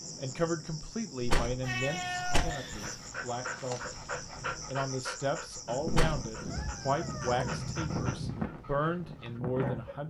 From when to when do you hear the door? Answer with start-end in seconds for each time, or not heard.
1.2-2.5, 5.8-6.3.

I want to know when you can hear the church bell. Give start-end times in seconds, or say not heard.
not heard.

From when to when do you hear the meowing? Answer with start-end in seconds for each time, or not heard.
1.6-3.1, 6.5-8.4.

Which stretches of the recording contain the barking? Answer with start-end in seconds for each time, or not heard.
2.7-9.9.